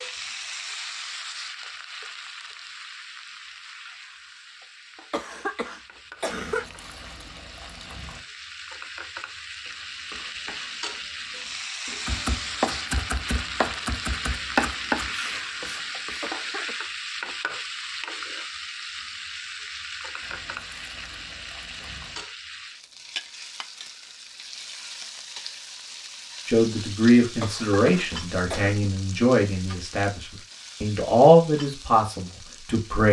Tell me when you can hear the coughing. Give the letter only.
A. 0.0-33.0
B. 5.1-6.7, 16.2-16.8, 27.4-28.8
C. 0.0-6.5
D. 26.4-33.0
B.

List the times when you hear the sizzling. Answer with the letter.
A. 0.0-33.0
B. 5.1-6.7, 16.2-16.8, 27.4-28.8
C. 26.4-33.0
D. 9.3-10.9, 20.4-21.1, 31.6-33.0
A.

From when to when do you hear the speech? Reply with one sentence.
The speech can be heard from 26.4 to 33.0 s.